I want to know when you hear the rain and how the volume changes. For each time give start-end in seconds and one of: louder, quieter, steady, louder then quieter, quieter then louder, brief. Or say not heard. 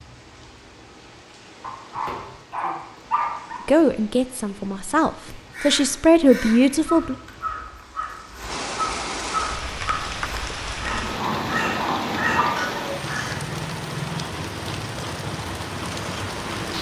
0.0-16.7 louder.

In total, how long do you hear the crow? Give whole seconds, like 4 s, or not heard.
8 s.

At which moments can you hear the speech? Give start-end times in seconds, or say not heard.
3.6-7.2.